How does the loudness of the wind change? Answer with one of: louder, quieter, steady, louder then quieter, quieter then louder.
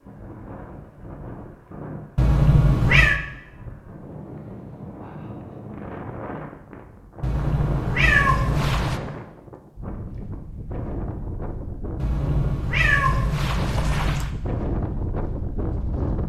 louder.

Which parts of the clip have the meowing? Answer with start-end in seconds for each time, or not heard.
2.1-3.2, 7.2-9.0, 11.9-14.3.